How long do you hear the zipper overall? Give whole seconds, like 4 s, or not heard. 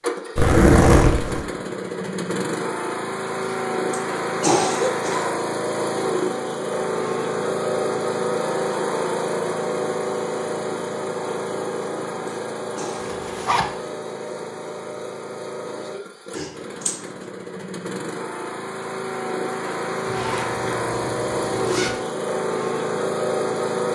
4 s.